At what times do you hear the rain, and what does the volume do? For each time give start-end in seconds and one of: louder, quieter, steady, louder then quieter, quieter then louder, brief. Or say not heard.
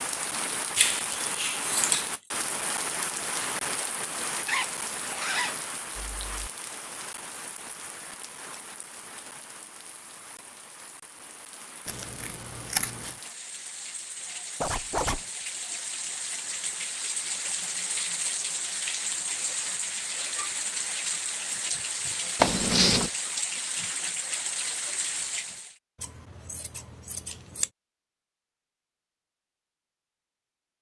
0.0-25.8 quieter then louder.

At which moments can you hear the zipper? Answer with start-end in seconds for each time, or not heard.
4.5-6.5, 14.6-15.2, 22.4-23.1.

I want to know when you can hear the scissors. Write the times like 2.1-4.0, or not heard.
0.8-2.1, 11.8-13.2, 26.0-27.7.